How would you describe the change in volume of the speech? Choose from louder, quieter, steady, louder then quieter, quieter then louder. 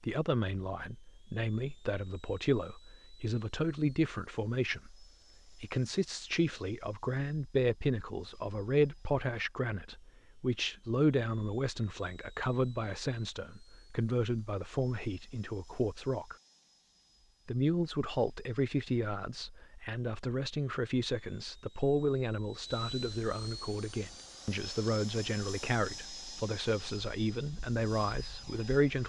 steady.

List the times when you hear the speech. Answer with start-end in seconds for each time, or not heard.
0.0-16.4, 17.4-29.0.